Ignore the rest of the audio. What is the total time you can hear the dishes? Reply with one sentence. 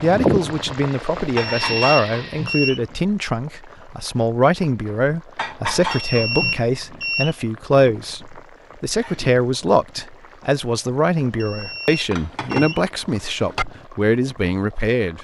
The dishes can be heard for 5 seconds in total.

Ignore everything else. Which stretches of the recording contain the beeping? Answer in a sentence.
The beeping can be heard from 1.4 to 2.8 s, from 5.8 to 7.3 s and from 11.2 to 12.8 s.